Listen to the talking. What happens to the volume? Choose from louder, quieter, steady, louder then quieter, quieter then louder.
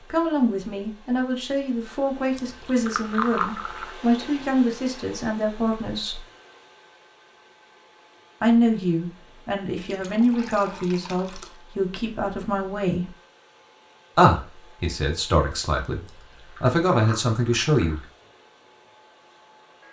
steady.